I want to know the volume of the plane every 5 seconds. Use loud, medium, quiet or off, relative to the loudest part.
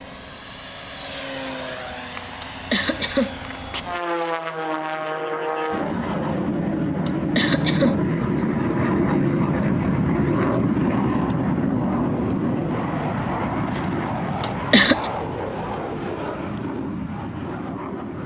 medium, loud, loud, medium.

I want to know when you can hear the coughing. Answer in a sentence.
You can hear the coughing from 2.4 to 3.4 s, from 7.0 to 8.0 s and from 14.4 to 15.1 s.